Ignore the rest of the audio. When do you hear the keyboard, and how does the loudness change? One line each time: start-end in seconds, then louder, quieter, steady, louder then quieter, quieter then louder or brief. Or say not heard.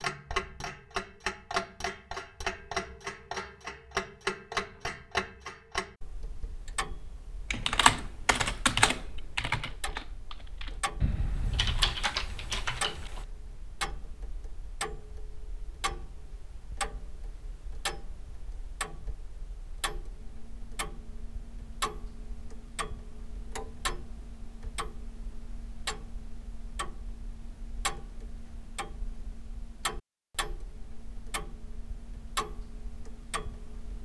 7.5-13.2 quieter then louder.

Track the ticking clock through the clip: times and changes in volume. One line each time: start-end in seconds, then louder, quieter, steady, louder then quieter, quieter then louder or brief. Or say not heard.
0.0-34.0 quieter.